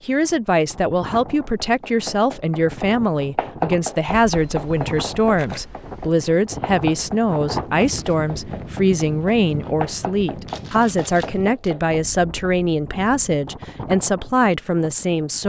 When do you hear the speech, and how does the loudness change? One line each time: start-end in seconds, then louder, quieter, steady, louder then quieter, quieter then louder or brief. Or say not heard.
0.1-15.4 steady.